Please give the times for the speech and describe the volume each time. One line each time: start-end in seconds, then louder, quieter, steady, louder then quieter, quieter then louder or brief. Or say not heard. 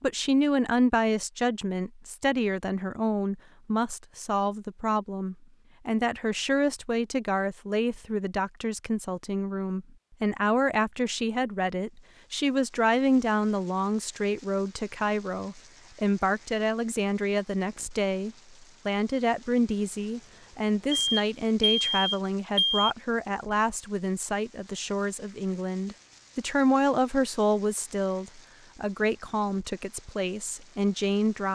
0.0-31.5 steady.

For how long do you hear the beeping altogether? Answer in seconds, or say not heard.
2 s.